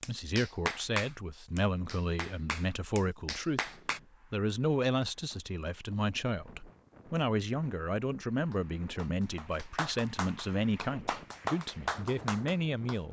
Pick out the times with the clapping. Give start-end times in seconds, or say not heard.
0.0-4.0, 8.5-13.0.